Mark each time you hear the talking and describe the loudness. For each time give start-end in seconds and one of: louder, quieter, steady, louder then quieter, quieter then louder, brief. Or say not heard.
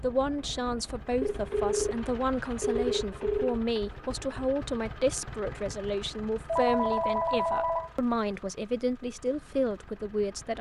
0.0-10.5 steady.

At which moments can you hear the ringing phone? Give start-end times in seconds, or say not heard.
1.2-3.6, 6.5-7.9.